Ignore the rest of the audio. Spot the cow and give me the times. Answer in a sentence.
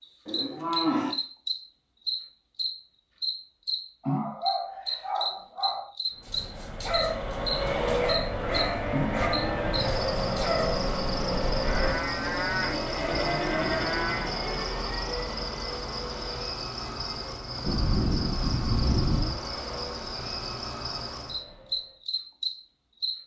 The cow can be heard from 0.2 to 1.1 s, from 8.4 to 10.1 s, from 11.6 to 14.3 s and from 17.6 to 19.4 s.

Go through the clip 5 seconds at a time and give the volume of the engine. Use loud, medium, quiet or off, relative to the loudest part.
off, loud, loud, medium, quiet.